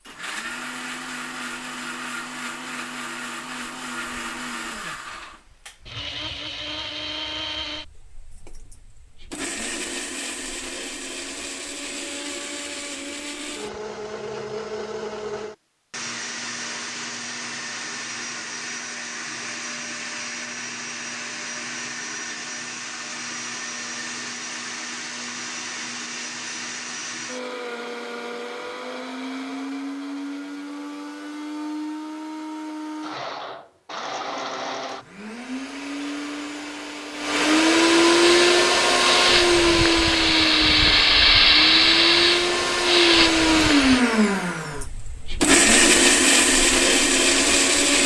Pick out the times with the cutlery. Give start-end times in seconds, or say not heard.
not heard.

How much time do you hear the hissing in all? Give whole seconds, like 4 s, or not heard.
6 s.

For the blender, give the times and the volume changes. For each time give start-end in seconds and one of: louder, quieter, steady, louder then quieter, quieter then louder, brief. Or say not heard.
0.0-48.0 louder.